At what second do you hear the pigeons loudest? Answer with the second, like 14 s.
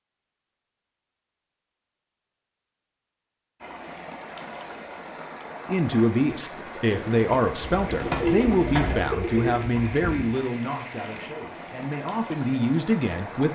8 s.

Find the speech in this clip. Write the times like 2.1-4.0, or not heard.
5.7-13.5.